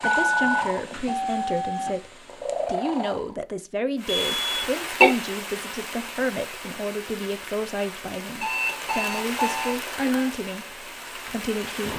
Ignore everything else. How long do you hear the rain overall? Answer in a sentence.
You can hear the rain for 8 seconds altogether.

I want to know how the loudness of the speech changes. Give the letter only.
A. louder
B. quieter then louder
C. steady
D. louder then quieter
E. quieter
C.